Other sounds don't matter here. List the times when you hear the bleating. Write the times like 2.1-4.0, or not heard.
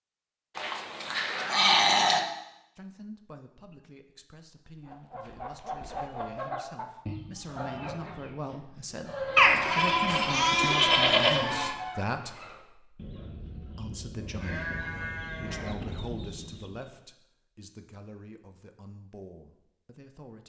0.6-2.2, 9.3-11.8, 14.2-15.8.